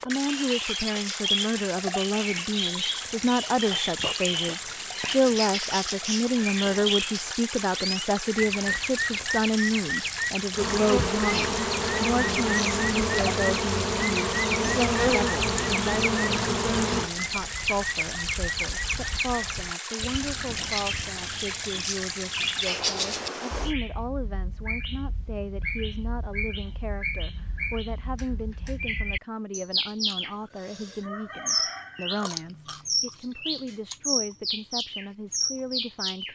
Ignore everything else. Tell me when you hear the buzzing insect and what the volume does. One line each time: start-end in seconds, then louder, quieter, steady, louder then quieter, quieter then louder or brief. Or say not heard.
10.5-17.1 steady.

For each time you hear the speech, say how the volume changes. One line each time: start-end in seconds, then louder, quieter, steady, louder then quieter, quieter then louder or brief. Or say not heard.
0.1-36.3 quieter.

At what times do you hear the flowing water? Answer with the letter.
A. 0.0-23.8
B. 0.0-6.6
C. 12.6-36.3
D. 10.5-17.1
A.